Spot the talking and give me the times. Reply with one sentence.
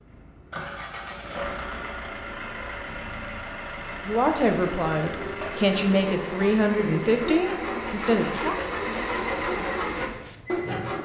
You can hear the talking from 4.0 to 8.7 s.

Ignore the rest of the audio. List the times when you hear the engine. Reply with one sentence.
You can hear the engine from 0.0 to 11.0 s.